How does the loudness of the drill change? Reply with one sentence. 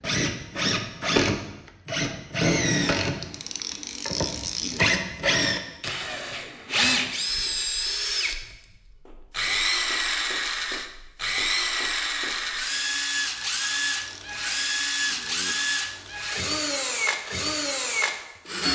The loudness of the drill stays about the same.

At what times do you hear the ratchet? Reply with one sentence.
The ratchet can be heard from 3.2 to 5.0 s and from 13.7 to 16.1 s.